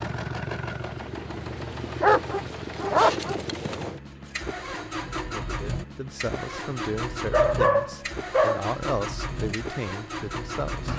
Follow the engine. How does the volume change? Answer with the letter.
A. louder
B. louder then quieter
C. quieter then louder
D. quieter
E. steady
E.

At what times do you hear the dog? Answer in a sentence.
The dog can be heard from 2.0 to 3.4 s and from 7.3 to 8.7 s.